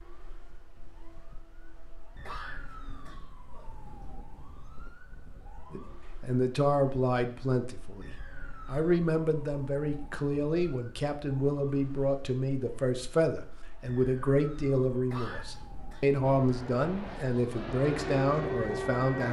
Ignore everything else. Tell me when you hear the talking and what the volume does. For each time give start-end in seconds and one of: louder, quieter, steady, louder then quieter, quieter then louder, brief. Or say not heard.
5.7-19.2 steady.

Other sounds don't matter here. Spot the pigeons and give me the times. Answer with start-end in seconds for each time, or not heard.
not heard.